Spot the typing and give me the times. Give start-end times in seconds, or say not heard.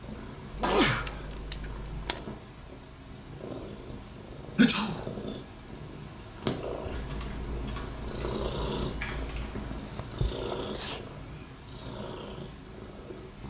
6.8-9.8.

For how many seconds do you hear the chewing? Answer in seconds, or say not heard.
2 s.